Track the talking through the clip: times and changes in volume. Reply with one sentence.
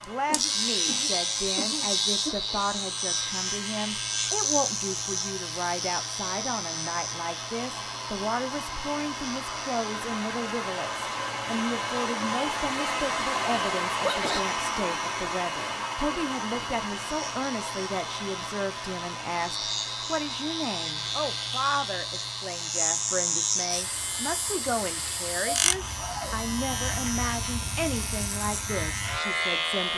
The talking can be heard from 0.1 to 29.9 s, at a steady volume.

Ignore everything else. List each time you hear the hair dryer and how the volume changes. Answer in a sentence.
The hair dryer can be heard from 0.0 to 29.9 s, getting louder then quieter.